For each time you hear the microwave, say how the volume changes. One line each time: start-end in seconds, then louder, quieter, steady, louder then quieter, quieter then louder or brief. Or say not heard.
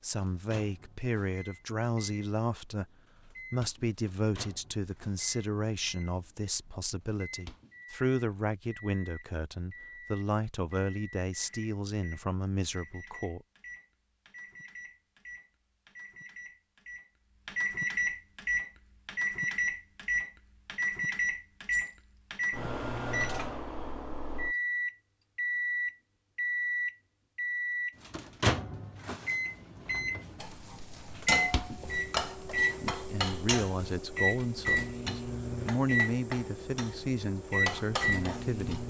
0.0-38.8 louder.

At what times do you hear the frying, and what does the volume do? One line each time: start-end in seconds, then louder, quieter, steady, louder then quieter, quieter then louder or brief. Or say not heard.
30.4-38.8 quieter then louder.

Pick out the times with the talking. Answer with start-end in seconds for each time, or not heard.
0.0-13.4, 32.8-38.8.